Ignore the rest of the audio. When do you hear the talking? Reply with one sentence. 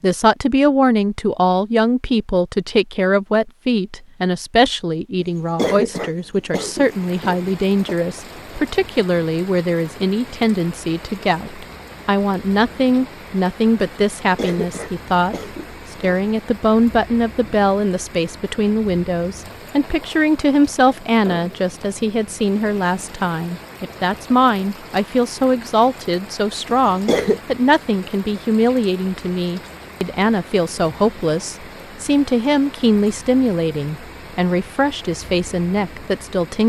You can hear the talking from 0.0 to 36.6 s.